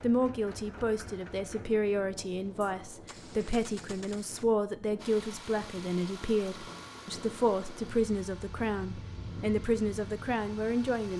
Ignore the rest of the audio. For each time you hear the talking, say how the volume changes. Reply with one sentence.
The talking can be heard from 0.0 to 11.1 s, at a steady volume.